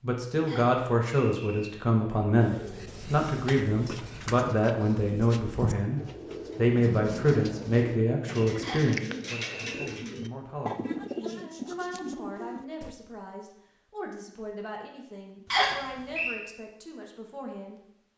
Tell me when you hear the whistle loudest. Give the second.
16 s.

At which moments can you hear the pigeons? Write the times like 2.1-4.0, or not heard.
2.4-12.9.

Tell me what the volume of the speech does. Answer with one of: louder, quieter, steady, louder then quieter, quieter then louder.
quieter.